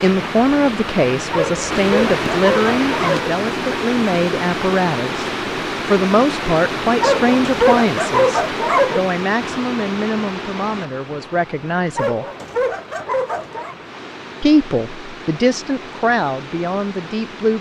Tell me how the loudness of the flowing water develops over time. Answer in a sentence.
The loudness of the flowing water goes down.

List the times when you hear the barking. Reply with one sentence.
You can hear the barking from 1.3 to 3.3 s, from 7.0 to 9.0 s and from 11.9 to 13.8 s.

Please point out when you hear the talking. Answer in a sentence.
You can hear the talking from 0.0 to 12.2 s and from 14.4 to 17.5 s.